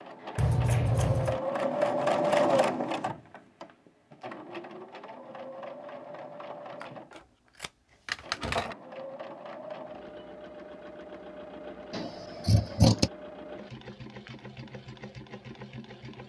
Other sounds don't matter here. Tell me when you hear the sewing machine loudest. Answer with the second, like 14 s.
2 s.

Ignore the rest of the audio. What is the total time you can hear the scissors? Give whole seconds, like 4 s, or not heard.
4 s.